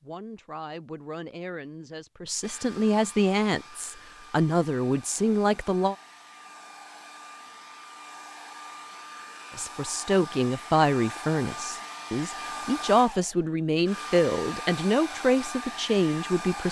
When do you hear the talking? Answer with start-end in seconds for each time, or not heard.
0.0-6.0, 9.6-16.6.